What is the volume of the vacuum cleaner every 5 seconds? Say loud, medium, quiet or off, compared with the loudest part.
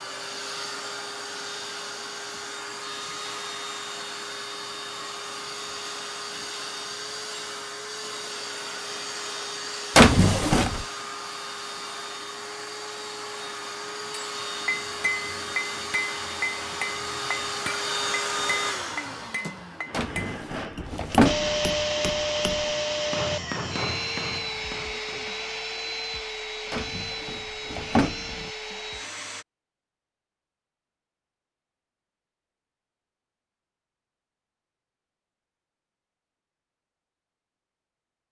medium, medium, medium, loud, loud, medium, off, off.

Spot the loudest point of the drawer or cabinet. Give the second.
10 s.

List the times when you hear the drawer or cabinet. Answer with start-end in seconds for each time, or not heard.
9.9-10.8, 19.9-21.6, 26.7-28.5.